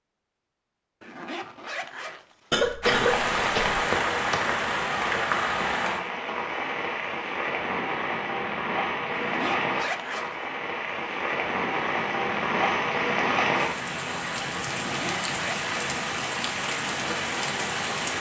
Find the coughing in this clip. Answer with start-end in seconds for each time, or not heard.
2.5-3.8.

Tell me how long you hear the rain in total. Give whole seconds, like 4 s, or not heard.
15 s.